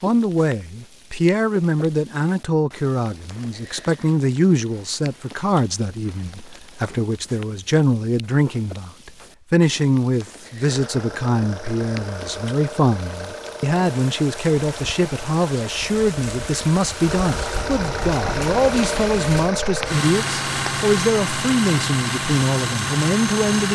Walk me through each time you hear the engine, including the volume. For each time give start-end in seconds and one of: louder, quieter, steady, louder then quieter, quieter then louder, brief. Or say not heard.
10.7-23.6 louder.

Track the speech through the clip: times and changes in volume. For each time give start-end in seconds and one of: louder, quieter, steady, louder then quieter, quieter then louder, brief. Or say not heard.
0.0-23.6 steady.